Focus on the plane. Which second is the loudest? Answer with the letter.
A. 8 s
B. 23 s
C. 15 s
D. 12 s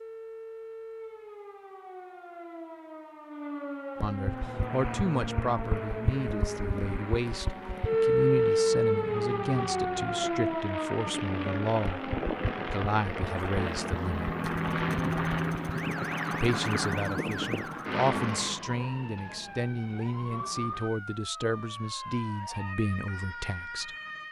C.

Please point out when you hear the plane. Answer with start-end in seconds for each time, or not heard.
4.2-18.6.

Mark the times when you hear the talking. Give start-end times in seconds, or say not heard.
4.0-14.3, 16.3-23.9.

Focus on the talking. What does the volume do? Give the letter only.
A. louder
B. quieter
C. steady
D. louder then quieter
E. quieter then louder
C.